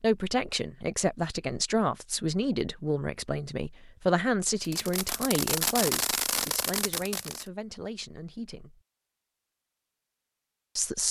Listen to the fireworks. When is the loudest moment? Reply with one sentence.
The loudest moment of the fireworks is at 6 seconds.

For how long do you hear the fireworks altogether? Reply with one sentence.
You can hear the fireworks for 3 seconds altogether.